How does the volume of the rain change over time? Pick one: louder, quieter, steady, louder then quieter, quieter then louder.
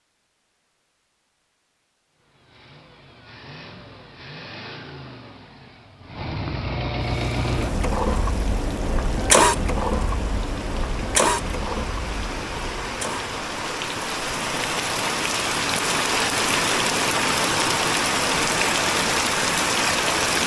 louder.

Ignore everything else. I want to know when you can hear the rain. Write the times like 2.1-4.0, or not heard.
7.0-20.4.